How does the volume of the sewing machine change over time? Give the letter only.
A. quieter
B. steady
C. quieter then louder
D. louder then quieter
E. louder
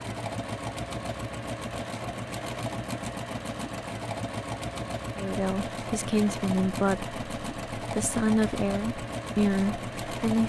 B.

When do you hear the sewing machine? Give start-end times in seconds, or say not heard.
0.0-10.4.